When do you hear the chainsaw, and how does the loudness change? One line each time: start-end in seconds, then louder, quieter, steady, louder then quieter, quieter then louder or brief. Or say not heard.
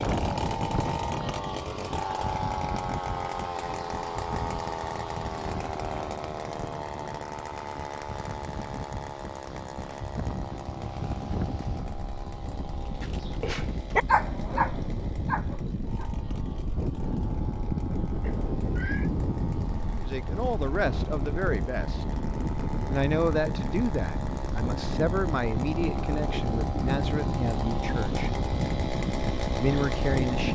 0.0-30.5 quieter then louder.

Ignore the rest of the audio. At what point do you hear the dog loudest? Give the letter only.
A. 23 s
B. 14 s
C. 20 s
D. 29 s
B.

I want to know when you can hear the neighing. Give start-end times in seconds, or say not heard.
18.2-19.1.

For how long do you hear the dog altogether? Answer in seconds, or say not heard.
3 s.